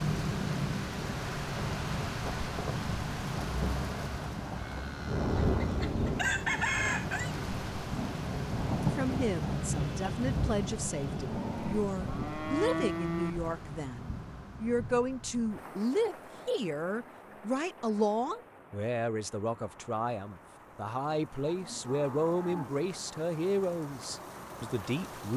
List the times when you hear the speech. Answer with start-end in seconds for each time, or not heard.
8.9-25.3.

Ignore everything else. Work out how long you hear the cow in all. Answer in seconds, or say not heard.
5 s.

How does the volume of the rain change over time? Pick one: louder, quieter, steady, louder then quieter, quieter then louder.
quieter.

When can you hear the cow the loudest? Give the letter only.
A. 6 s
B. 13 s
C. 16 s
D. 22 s
B.